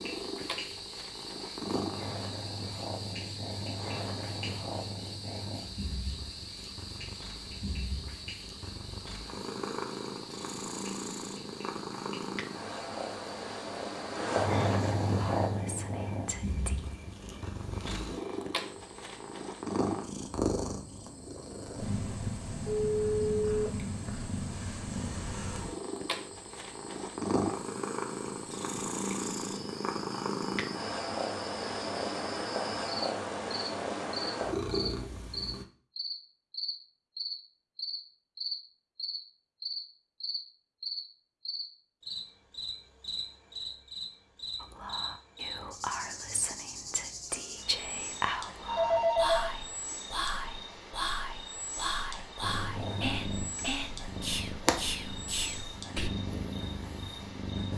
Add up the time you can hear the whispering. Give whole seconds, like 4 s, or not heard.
13 s.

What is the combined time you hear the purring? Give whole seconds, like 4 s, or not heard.
41 s.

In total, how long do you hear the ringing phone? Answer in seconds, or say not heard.
2 s.